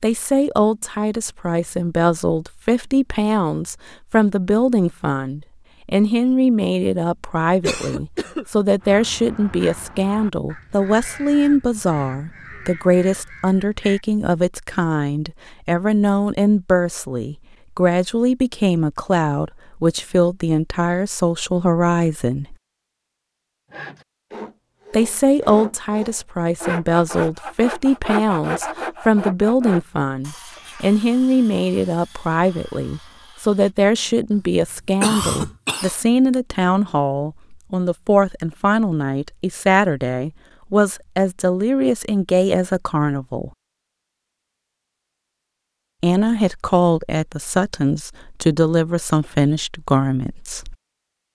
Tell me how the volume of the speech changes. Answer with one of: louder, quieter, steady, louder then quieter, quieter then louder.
steady.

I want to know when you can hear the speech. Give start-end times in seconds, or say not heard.
0.0-22.6, 24.9-43.5, 46.0-50.8.